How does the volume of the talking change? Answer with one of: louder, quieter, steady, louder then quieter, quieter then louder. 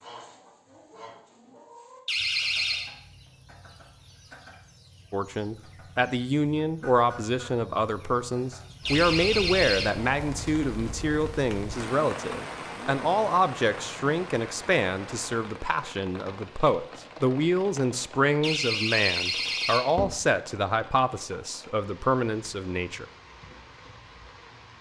steady.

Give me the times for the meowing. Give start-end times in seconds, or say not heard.
not heard.